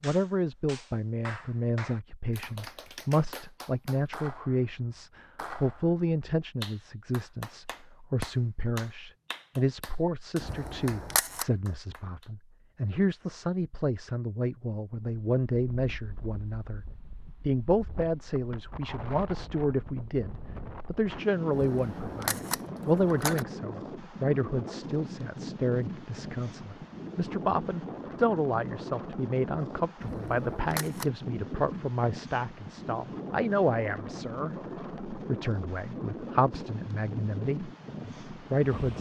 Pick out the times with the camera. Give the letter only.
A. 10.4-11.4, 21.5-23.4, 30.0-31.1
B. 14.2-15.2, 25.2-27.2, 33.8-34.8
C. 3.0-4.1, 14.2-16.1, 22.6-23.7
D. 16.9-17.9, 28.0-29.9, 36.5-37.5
A.